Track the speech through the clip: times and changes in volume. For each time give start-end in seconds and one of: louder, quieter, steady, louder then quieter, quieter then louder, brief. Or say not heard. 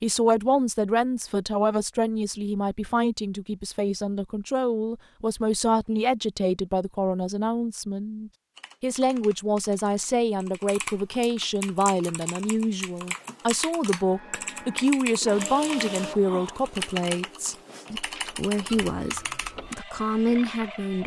0.0-21.0 steady.